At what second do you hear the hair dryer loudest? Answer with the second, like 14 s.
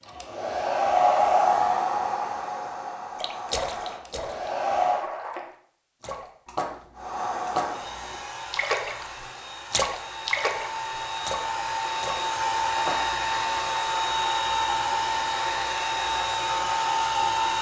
1 s.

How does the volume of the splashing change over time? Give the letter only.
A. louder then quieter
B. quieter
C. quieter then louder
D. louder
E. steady
A.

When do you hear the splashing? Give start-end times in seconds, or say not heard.
3.2-9.1, 9.7-13.3.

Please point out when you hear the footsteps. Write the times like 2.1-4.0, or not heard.
not heard.